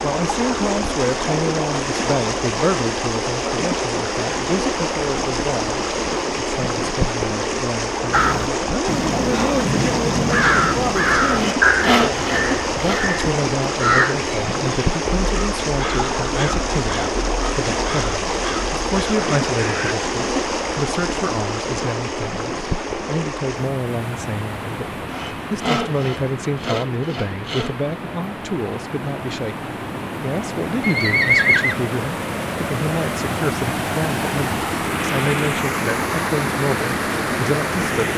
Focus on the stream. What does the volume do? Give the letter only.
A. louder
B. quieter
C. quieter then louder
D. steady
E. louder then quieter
C.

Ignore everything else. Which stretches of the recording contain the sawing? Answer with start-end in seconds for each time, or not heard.
11.3-13.1, 25.1-27.8.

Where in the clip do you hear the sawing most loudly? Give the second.
12 s.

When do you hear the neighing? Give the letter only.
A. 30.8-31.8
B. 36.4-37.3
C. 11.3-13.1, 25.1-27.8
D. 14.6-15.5
A.